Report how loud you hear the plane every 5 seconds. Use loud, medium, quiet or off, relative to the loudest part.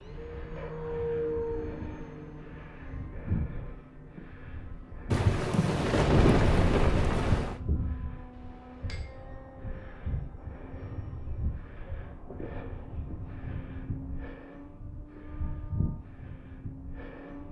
loud, loud, medium, medium.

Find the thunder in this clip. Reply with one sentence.
The thunder can be heard from 5.1 to 7.6 s.